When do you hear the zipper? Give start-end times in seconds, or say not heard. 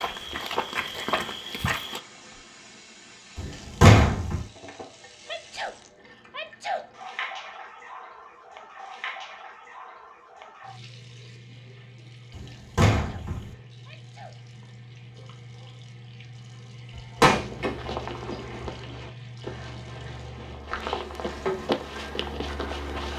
not heard.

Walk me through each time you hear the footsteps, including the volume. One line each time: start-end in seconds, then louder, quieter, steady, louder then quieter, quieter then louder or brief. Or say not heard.
0.0-2.0 brief
17.4-23.1 quieter then louder.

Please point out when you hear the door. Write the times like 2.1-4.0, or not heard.
3.8-4.4, 12.3-13.4, 16.9-18.7.